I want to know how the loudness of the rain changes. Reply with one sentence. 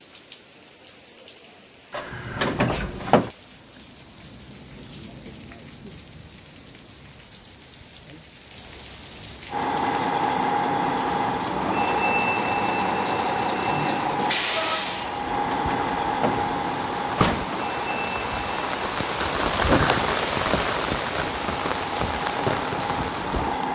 The loudness of the rain goes up.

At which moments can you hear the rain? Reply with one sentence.
You can hear the rain from 0.0 to 23.7 s.